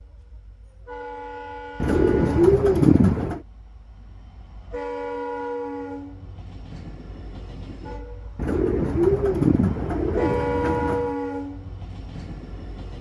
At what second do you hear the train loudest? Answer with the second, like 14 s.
11 s.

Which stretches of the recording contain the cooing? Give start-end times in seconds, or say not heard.
1.8-3.4, 8.3-11.2.